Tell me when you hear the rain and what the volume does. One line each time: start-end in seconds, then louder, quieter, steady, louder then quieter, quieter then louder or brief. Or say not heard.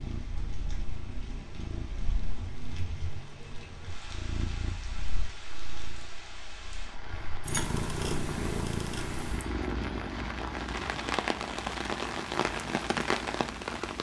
0.0-13.9 louder.